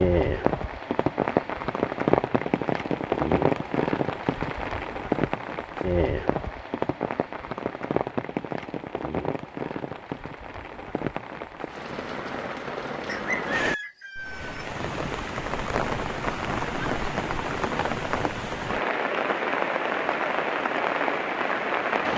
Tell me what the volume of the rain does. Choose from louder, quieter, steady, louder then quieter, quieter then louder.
quieter then louder.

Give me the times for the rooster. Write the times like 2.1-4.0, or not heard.
13.1-14.7.